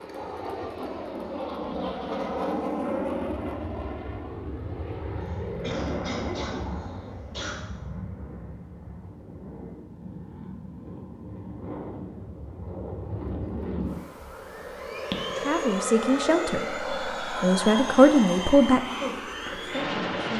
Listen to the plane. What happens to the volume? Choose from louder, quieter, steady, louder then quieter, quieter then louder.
quieter then louder.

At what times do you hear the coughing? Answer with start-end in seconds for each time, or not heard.
5.2-7.6.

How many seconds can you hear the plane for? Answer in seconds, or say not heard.
20 s.